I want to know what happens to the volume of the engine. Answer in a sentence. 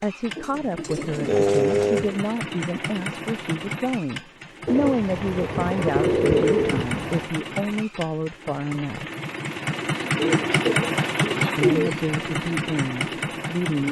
The volume of the engine goes up.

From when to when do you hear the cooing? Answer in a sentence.
The cooing can be heard from 0.3 to 2.2 s, from 4.7 to 7.3 s and from 10.2 to 11.9 s.